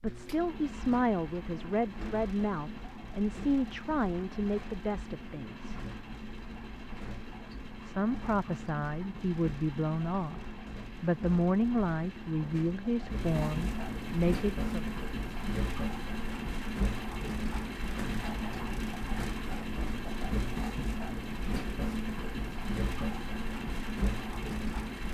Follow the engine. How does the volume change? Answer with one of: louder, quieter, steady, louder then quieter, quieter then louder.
louder.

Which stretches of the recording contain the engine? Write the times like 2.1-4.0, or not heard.
0.0-25.0.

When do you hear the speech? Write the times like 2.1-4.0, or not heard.
0.0-5.8, 7.8-10.4, 11.0-14.9.